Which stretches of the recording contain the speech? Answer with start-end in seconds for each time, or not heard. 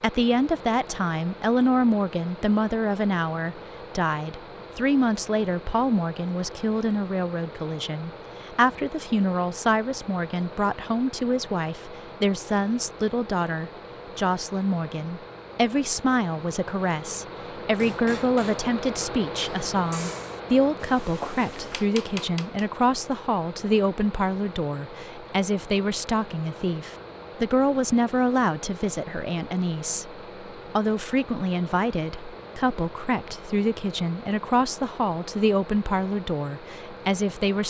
0.0-37.6.